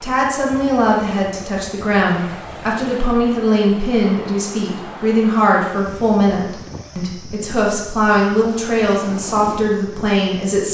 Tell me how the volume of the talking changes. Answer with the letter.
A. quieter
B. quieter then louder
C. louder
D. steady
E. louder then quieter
D.